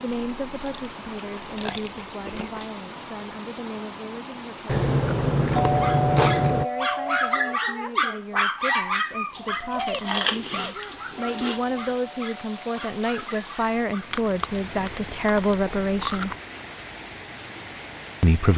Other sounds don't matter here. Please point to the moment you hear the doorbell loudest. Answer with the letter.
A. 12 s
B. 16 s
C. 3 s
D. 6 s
D.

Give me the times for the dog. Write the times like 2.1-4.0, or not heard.
5.6-14.2.